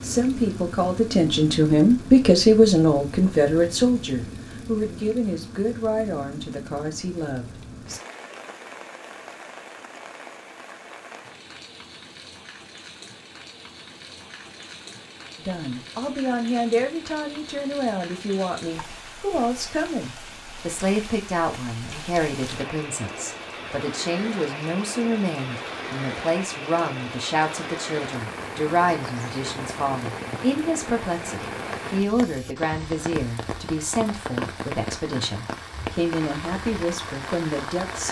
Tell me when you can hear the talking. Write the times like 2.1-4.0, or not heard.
0.0-8.0, 15.3-38.0.